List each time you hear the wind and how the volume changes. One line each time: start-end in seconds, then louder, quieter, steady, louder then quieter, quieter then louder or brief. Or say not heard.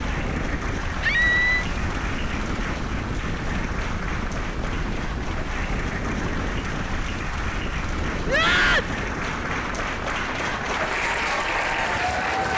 0.0-12.5 quieter.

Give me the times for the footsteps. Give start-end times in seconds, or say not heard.
not heard.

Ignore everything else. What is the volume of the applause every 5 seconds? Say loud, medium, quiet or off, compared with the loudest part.
medium, medium, loud.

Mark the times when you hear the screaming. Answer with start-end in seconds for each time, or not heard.
1.0-1.6, 8.2-8.9.